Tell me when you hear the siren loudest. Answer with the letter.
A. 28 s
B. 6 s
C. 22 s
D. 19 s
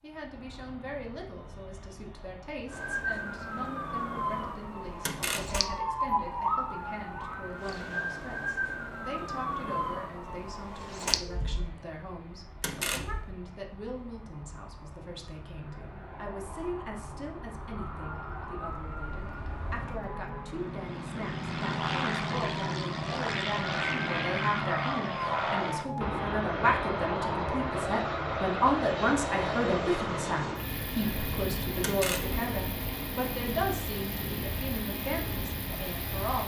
B.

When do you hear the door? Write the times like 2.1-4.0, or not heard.
5.0-5.7, 12.6-13.3, 31.8-32.4.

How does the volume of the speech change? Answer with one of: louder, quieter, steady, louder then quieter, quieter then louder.
louder.